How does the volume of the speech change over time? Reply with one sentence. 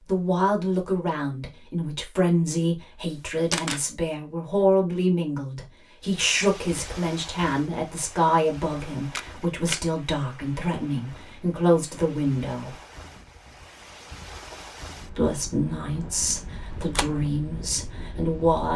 The loudness of the speech stays about the same.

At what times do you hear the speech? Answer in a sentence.
The speech can be heard from 0.1 to 12.8 s and from 15.1 to 18.7 s.